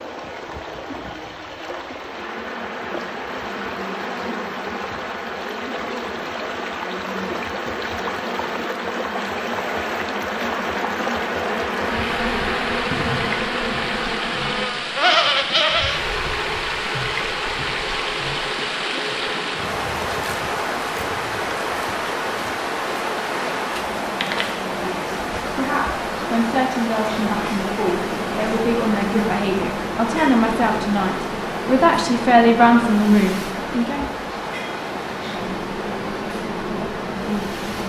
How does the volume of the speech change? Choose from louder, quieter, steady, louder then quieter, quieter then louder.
louder.